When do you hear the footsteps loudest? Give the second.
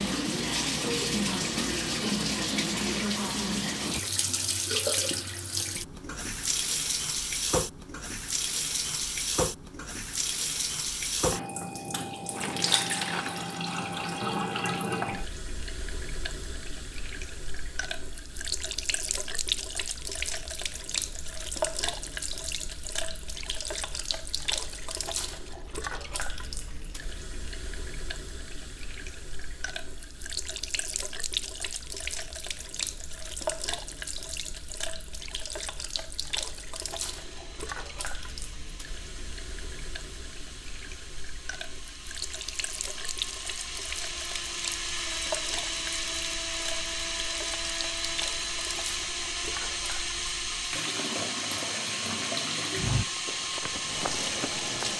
53 s.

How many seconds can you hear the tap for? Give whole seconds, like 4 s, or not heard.
55 s.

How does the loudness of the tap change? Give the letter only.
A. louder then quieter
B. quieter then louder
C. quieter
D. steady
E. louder
C.